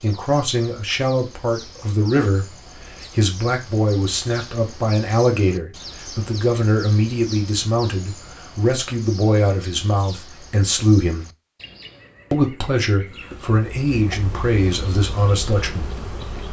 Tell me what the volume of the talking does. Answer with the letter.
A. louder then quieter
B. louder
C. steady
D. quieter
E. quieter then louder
C.